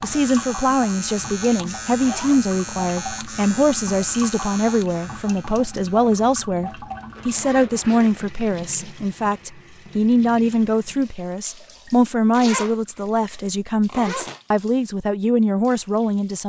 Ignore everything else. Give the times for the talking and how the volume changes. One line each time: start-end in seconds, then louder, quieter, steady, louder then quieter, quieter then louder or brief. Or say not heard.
0.0-16.4 steady.